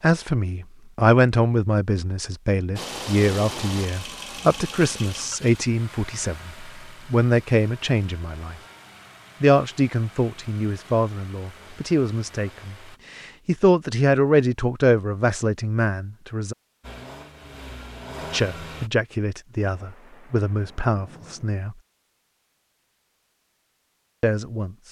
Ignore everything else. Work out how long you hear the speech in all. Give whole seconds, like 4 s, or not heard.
20 s.